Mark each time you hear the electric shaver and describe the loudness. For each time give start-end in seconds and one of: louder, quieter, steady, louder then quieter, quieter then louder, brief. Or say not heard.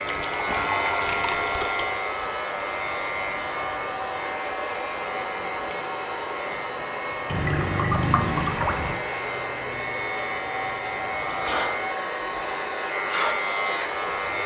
0.0-14.4 quieter then louder.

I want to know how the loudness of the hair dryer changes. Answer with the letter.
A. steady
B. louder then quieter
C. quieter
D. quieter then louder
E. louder
A.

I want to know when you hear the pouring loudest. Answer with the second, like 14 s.
8 s.